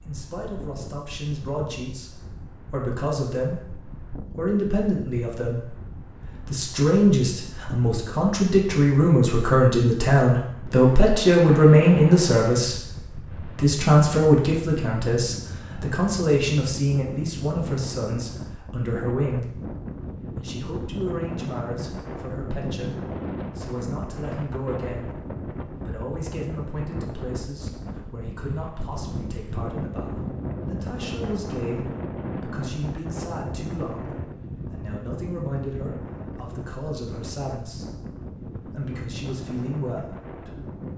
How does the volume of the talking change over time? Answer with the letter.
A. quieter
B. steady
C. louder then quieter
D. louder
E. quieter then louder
C.